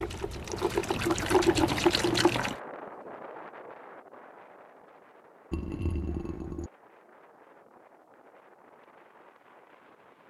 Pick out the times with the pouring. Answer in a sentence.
The pouring can be heard from 0.0 to 2.5 s and from 5.5 to 6.7 s.